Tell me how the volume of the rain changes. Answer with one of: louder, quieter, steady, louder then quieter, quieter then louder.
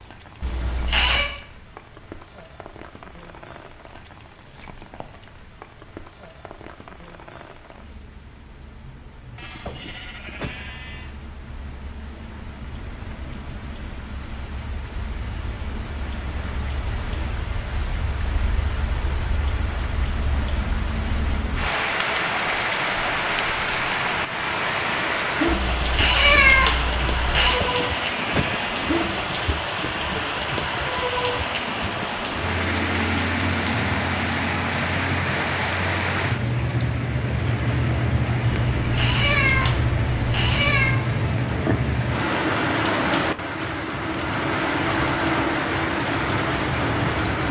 louder.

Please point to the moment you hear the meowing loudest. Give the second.
26 s.